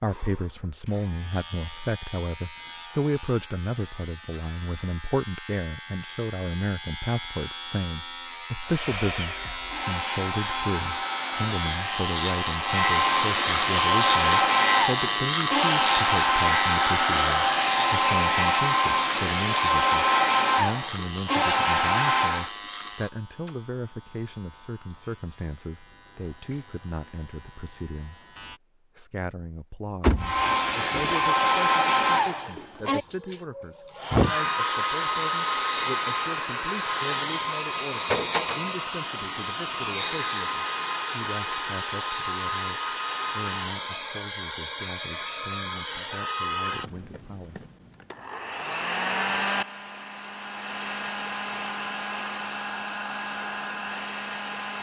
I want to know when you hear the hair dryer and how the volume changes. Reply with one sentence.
The hair dryer can be heard from 8.6 to 22.5 s, getting louder; and from 30.1 to 54.7 s, getting quieter.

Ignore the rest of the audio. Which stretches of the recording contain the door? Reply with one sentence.
The door can be heard from 30.0 to 31.4 s.